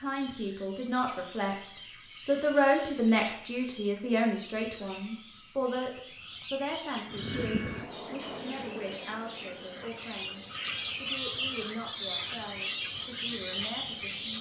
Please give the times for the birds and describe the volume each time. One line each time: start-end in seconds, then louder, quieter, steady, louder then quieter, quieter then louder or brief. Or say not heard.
0.0-14.3 louder.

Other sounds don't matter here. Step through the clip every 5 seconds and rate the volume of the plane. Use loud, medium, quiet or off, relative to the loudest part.
off, loud, quiet.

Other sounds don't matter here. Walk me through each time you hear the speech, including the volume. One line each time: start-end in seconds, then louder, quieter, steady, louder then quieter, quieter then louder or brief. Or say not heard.
0.0-14.3 quieter.